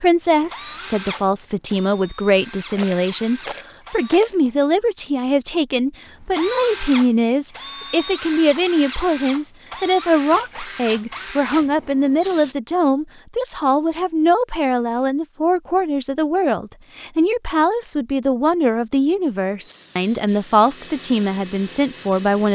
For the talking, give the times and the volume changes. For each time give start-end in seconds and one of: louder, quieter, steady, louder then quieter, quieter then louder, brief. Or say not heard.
0.0-22.5 steady.